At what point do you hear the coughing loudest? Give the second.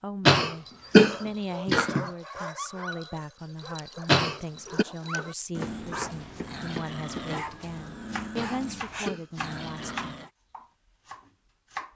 1 s.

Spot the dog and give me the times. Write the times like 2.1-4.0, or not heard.
0.6-10.3.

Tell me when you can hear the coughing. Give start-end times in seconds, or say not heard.
0.2-2.0, 4.0-4.8, 8.3-10.1.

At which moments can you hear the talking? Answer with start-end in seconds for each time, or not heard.
0.0-10.2.